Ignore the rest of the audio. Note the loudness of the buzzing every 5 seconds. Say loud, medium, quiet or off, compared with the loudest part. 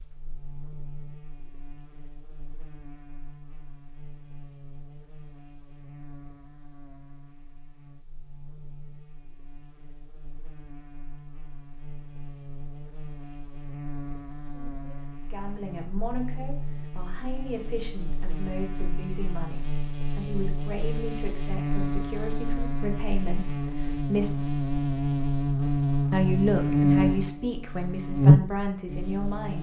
quiet, quiet, quiet, quiet, medium, loud.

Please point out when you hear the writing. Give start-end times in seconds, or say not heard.
not heard.